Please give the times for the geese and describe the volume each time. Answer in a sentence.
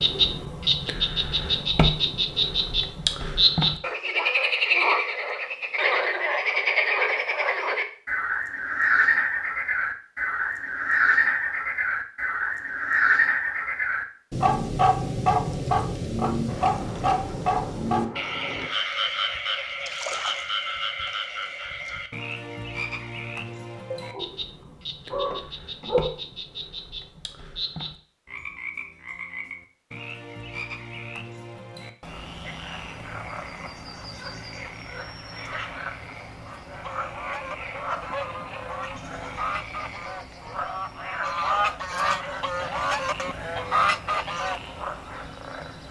You can hear the geese from 36.5 to 44.6 s, getting louder.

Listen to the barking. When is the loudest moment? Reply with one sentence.
The loudest moment of the barking is at 26 seconds.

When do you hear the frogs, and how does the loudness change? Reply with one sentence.
You can hear the frogs from 0.0 to 45.8 s, getting quieter.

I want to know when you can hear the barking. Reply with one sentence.
You can hear the barking from 23.9 to 26.1 s.